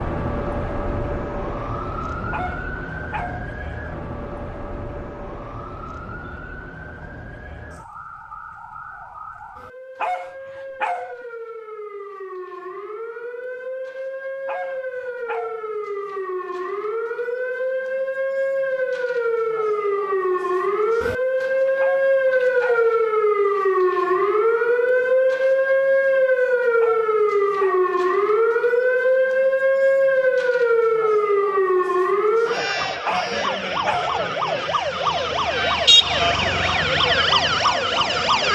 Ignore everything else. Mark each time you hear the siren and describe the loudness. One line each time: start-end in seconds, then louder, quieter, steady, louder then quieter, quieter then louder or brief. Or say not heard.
0.0-38.4 louder.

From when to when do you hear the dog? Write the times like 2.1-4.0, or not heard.
2.3-3.5, 10.0-11.2, 14.4-15.7, 21.8-22.9, 26.8-27.9, 33.0-34.1.